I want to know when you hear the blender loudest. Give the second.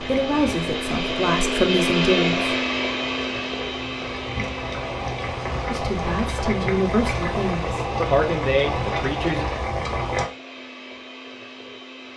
2 s.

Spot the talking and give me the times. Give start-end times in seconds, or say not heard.
0.0-2.5, 5.7-9.4.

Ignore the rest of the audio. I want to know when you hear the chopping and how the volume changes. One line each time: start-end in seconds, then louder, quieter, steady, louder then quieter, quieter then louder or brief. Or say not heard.
not heard.